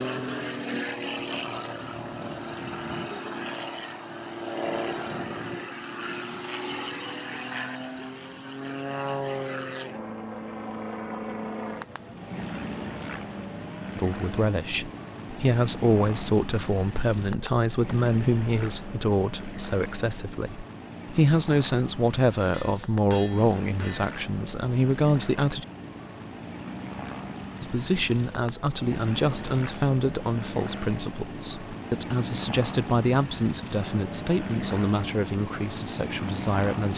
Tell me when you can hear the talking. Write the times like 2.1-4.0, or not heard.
13.9-25.6, 27.6-36.9.